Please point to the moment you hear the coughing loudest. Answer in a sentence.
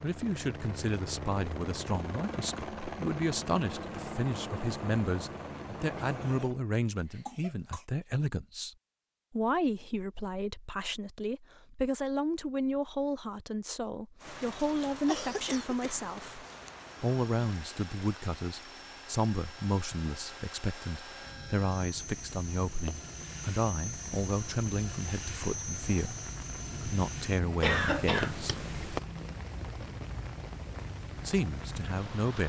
The loudest moment of the coughing is at 28 seconds.